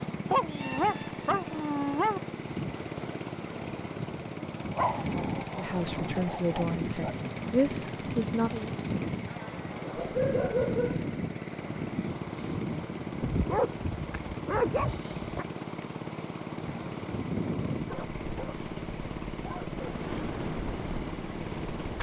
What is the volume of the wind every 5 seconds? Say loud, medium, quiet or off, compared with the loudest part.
medium, loud, loud, loud, loud.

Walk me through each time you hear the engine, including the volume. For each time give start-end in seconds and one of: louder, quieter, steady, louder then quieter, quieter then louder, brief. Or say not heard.
0.0-21.9 steady.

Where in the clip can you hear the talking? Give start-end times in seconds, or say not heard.
5.5-8.8.